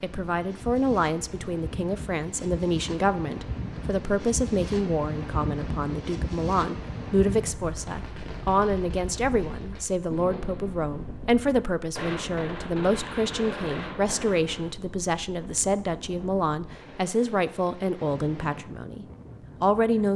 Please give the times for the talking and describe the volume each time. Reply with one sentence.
The talking can be heard from 0.0 to 20.1 s, at a steady volume.